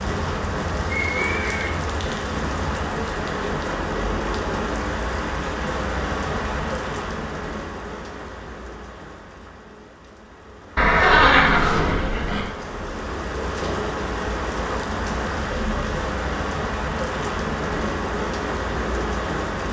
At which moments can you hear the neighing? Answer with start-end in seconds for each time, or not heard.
0.9-1.7, 10.8-12.4.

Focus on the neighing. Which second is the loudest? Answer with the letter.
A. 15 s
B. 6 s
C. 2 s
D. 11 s
D.